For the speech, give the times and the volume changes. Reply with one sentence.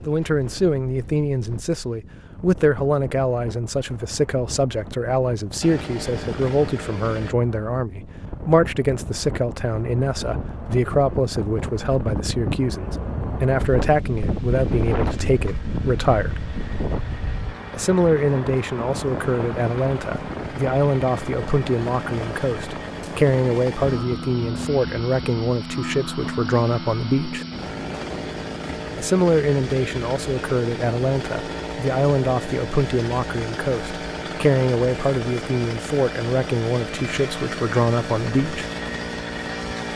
The speech can be heard from 0.1 to 16.5 s, at a steady volume; from 17.7 to 27.4 s, at a steady volume; and from 28.9 to 38.7 s, at a steady volume.